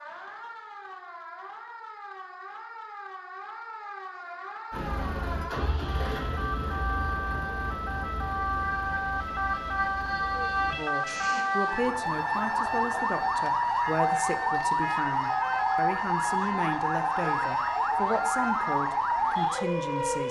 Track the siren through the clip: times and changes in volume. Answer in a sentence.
The siren can be heard from 0.0 to 20.2 s, getting louder.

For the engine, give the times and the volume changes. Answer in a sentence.
You can hear the engine from 4.7 to 11.4 s, getting quieter.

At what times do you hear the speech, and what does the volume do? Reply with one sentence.
The speech can be heard from 10.6 to 20.2 s, at a steady volume.